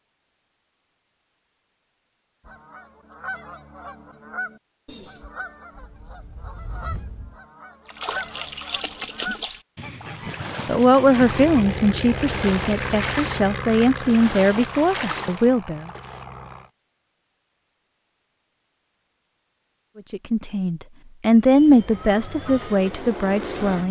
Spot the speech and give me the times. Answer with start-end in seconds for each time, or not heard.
10.7-15.8, 19.9-23.8.